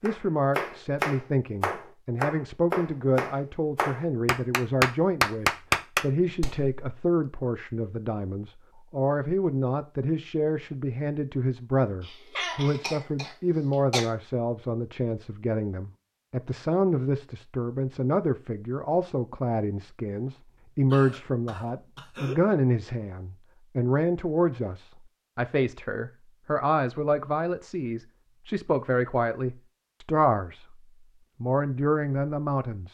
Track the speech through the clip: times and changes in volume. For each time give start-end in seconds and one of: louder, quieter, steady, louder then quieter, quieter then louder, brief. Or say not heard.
0.0-30.8 steady
31.4-32.9 brief.